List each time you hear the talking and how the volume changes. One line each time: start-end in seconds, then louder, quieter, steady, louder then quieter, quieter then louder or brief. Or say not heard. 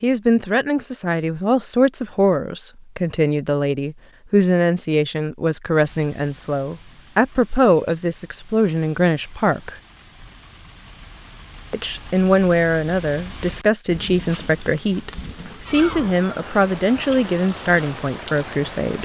0.0-9.8 steady
11.7-19.0 steady.